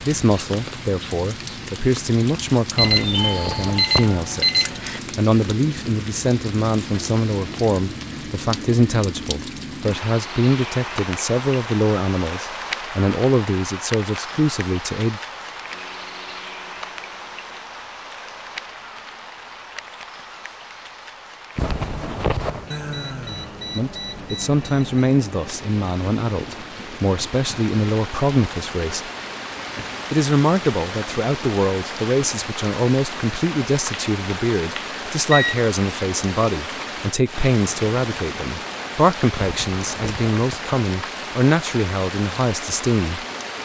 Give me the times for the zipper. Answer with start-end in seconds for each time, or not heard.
2.8-4.2, 21.6-22.7, 39.4-40.6.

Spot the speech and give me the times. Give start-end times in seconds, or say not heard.
0.0-15.2, 23.8-29.1, 30.1-43.2.